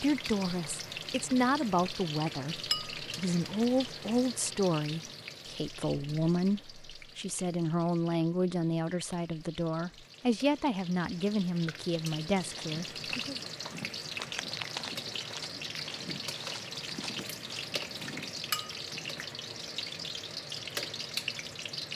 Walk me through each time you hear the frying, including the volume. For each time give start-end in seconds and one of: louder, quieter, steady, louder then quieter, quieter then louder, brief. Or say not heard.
0.0-21.8 quieter then louder.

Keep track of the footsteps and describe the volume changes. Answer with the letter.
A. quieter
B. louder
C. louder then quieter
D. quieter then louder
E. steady
C.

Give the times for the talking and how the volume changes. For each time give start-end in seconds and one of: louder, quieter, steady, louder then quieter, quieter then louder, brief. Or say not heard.
0.0-13.3 steady.